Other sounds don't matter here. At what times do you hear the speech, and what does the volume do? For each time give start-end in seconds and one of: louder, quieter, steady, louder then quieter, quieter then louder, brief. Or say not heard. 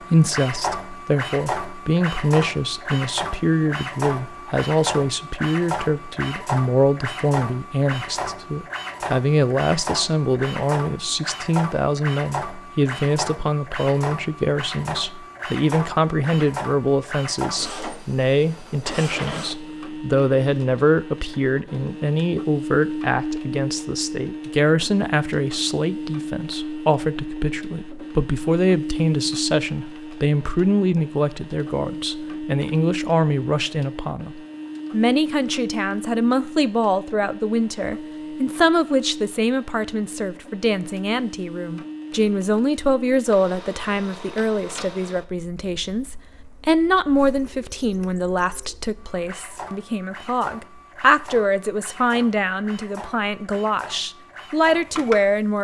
0.1-55.5 steady.